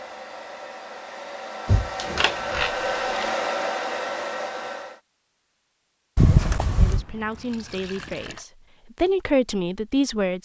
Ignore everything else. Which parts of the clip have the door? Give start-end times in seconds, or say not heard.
1.6-2.7, 6.2-7.0.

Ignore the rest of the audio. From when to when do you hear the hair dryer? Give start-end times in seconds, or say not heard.
0.0-5.0.